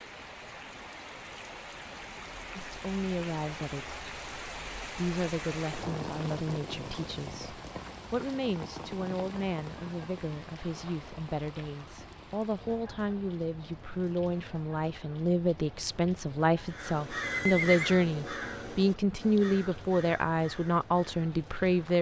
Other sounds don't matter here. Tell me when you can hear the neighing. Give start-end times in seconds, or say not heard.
17.2-17.9.